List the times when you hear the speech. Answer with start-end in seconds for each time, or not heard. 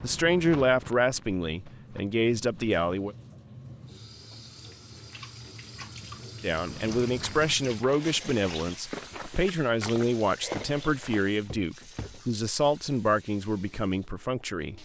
0.0-3.1, 6.4-14.8.